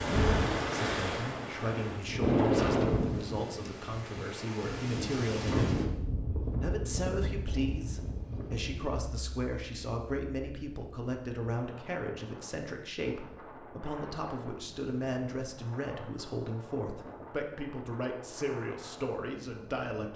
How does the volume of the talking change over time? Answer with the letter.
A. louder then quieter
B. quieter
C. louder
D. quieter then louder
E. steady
E.